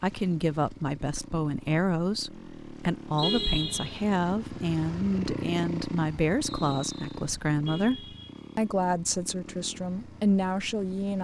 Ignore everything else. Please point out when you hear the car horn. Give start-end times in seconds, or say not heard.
3.2-4.0, 7.7-8.5.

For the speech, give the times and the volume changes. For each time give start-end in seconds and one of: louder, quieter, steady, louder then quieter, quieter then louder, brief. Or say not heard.
0.0-11.2 steady.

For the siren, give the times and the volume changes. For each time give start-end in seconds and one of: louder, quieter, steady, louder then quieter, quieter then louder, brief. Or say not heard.
not heard.